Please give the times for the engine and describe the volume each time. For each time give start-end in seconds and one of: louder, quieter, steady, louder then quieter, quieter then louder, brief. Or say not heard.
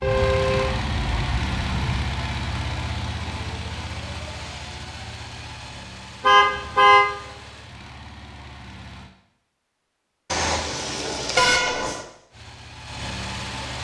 0.0-9.1 quieter
12.3-13.7 brief.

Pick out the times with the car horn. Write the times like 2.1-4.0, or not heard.
0.0-2.0, 6.2-7.0, 10.3-12.1.